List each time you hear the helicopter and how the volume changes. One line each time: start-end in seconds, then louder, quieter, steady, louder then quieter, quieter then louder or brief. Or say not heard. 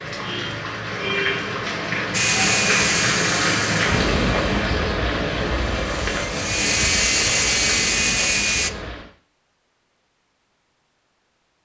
2.1-8.7 quieter then louder.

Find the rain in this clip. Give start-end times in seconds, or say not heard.
0.0-9.1.